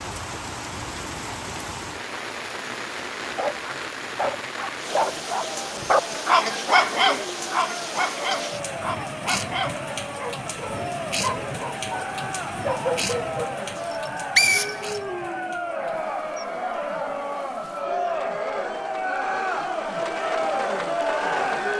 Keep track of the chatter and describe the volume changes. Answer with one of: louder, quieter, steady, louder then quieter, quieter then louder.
louder.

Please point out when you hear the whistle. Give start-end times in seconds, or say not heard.
13.9-15.0.